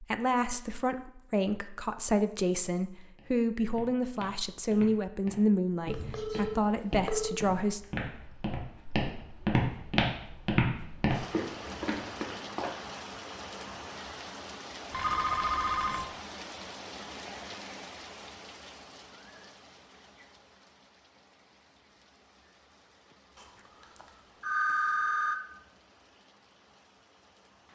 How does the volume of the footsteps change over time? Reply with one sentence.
The volume of the footsteps goes up.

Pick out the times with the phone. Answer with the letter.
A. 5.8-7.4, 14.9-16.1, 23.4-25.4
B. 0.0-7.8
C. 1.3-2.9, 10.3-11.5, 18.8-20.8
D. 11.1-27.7
A.